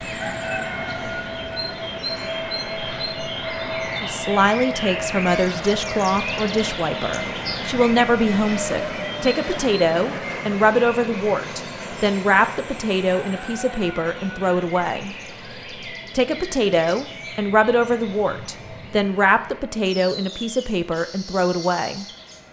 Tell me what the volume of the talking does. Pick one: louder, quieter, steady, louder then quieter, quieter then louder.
steady.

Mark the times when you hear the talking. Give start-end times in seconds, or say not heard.
4.0-15.2, 16.1-22.1.